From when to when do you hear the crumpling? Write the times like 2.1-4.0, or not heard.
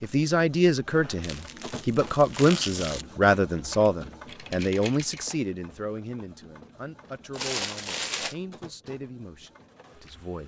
1.2-3.0, 7.3-8.3.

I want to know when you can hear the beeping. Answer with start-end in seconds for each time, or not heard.
not heard.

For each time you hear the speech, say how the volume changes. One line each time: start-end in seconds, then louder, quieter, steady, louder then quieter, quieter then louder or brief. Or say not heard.
0.0-10.4 quieter.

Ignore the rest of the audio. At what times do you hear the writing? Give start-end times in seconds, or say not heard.
not heard.